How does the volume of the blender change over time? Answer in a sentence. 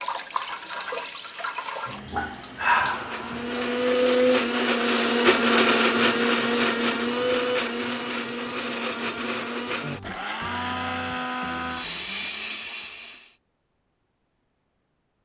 The volume of the blender goes down.